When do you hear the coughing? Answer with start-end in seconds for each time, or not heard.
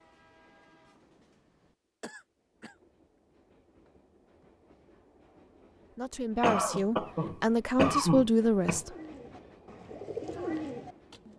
2.0-2.8, 6.4-8.8.